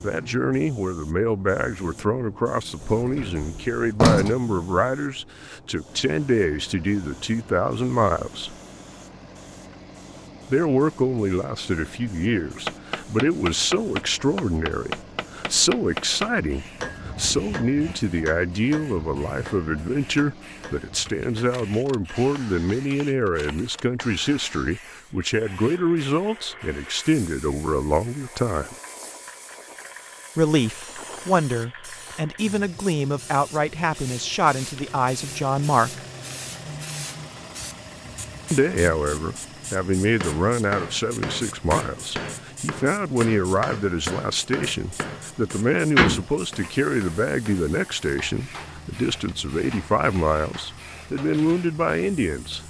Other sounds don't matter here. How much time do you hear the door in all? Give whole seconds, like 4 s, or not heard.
2 s.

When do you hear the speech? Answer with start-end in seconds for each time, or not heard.
0.0-8.6, 10.5-28.8, 30.4-36.0, 38.5-52.6.